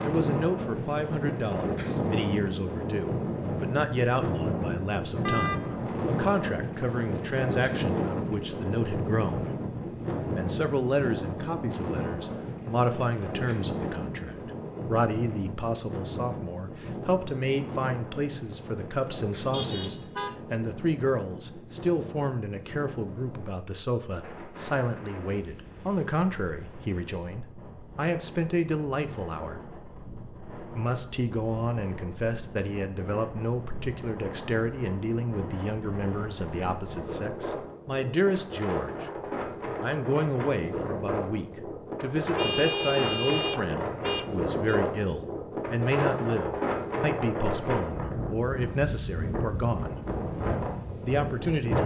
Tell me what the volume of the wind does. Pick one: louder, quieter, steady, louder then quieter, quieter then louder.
quieter then louder.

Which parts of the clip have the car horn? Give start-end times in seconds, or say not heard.
5.2-5.9, 19.4-20.4, 42.4-44.8.